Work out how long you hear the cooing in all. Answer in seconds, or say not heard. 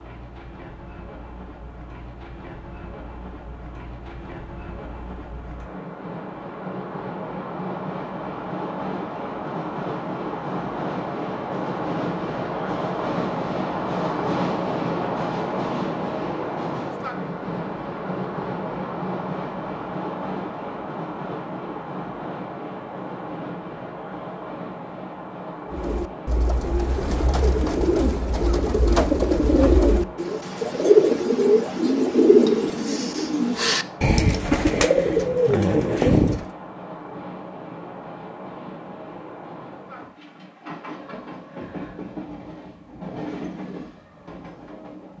11 s.